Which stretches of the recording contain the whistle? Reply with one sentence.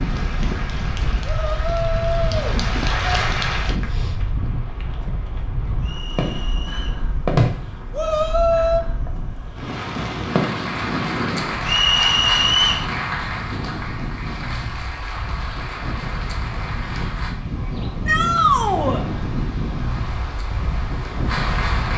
The whistle can be heard from 5.8 to 7.0 s and from 11.7 to 12.9 s.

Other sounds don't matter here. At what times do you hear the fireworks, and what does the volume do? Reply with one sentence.
You can hear the fireworks from 5.6 to 10.8 s, getting louder then quieter.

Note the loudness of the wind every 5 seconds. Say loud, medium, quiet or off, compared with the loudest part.
loud, medium, loud, loud, loud.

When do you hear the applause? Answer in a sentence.
You can hear the applause from 0.0 to 4.0 s, from 10.2 to 17.4 s and from 19.8 to 21.9 s.